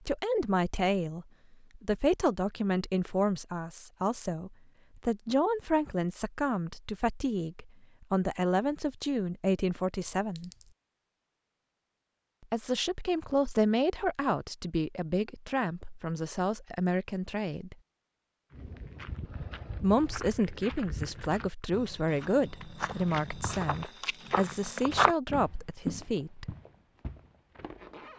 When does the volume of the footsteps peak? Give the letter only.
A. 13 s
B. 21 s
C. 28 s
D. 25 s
D.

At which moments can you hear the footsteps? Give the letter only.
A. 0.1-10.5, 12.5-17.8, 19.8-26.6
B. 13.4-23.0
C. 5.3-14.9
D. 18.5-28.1
D.